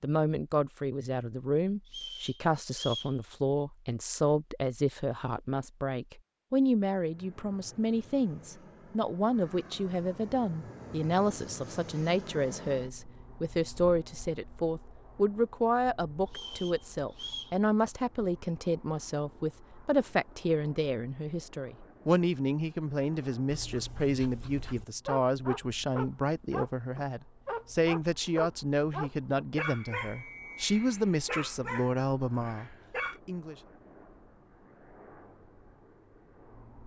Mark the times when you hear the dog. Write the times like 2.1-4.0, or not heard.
23.4-33.2.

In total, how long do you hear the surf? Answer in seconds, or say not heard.
not heard.